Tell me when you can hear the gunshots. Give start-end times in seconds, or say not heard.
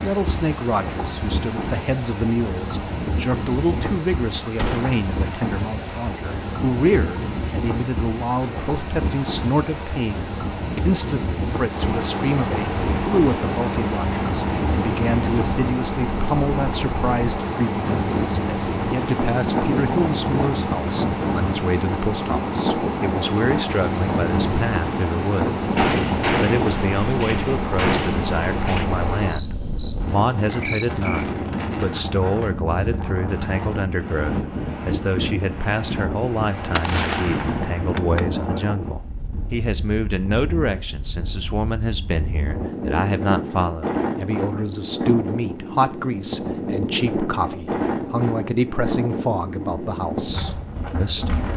4.5-5.0, 25.8-28.9, 36.8-38.2.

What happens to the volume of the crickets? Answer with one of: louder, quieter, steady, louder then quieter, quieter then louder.
steady.